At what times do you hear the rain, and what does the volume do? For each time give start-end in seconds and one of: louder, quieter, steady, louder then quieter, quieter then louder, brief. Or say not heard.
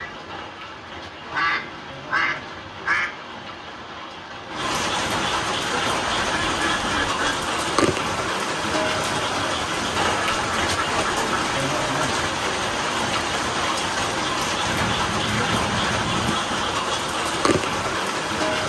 0.0-18.6 louder.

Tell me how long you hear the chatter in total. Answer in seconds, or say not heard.
not heard.